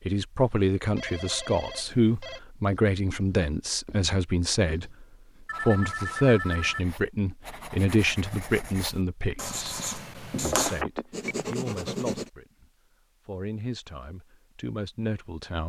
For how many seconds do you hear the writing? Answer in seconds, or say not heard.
10 s.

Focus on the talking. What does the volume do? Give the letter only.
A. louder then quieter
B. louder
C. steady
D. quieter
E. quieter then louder
D.